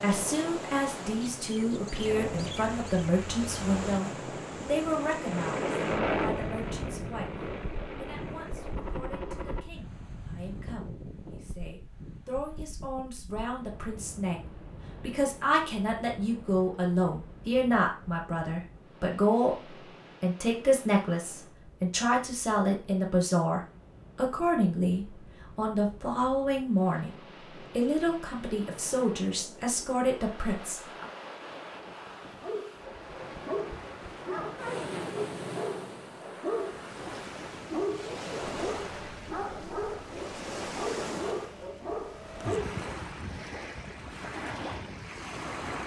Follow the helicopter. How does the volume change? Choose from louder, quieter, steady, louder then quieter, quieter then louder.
louder then quieter.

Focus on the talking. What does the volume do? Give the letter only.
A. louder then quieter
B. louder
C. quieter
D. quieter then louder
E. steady
D.